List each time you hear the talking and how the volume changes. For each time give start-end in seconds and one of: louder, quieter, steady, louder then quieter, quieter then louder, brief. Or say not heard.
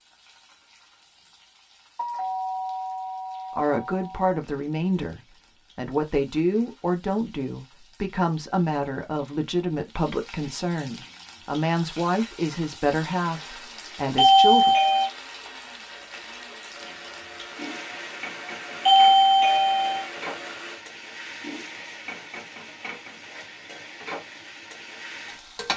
3.5-14.7 steady.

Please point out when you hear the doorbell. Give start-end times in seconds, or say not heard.
1.9-4.2, 14.2-15.1, 18.9-20.1.